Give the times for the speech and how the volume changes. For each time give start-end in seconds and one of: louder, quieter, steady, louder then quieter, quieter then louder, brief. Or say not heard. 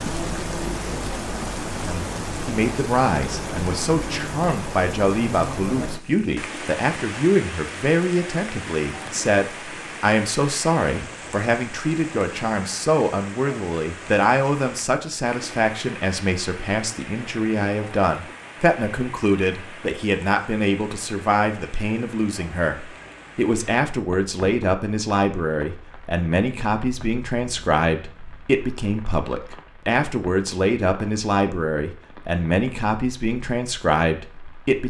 1.9-34.8 steady.